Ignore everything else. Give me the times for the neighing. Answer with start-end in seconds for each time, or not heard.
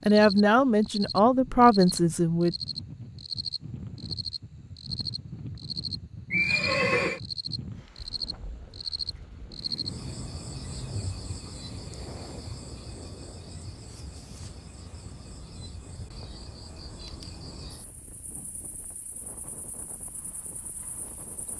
6.3-7.2.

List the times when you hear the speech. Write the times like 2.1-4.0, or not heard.
0.1-2.5.